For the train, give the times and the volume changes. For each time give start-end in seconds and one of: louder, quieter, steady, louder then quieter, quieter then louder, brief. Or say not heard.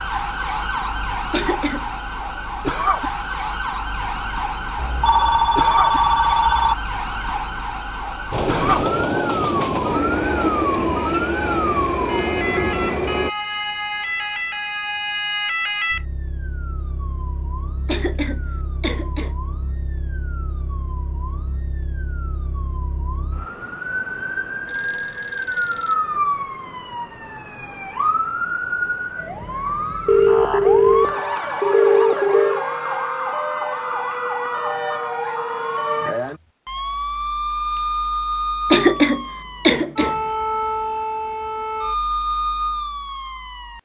8.3-13.3 steady.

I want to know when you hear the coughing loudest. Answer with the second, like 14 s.
39 s.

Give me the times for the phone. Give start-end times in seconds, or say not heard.
4.8-6.8, 24.6-26.2, 30.1-32.6.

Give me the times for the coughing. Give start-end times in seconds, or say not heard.
1.3-1.9, 17.9-19.3, 38.7-40.1.